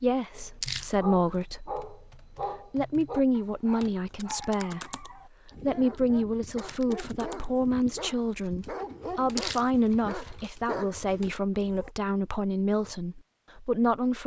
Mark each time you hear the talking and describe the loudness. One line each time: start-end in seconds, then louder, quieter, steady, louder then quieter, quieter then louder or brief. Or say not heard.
0.0-1.8 brief
2.7-14.2 steady.